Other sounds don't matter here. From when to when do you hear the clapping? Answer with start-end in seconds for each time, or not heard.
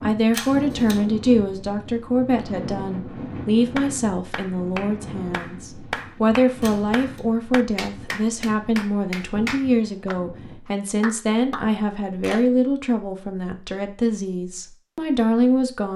3.8-12.4.